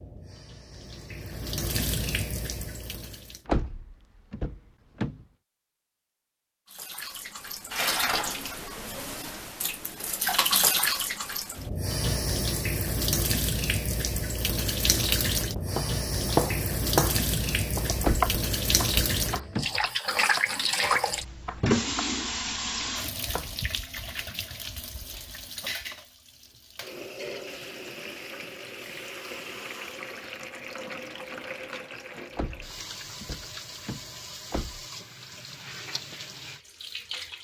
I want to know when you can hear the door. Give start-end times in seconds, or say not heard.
3.5-5.2, 18.0-19.7, 32.4-34.9.